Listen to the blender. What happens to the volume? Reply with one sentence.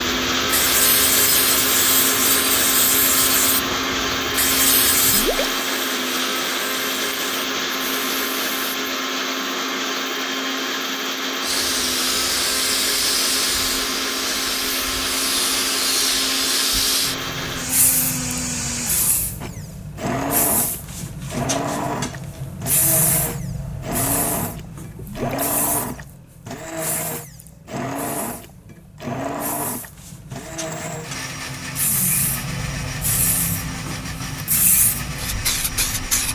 The loudness of the blender goes down.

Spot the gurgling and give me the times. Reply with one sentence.
The gurgling can be heard from 5.0 to 5.5 s and from 24.9 to 25.5 s.